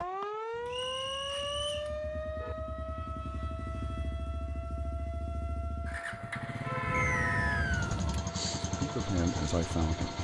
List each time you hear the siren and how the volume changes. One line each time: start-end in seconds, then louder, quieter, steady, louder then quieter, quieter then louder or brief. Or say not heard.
0.0-10.1 quieter.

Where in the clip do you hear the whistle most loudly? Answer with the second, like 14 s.
7 s.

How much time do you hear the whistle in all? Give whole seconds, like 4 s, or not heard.
2 s.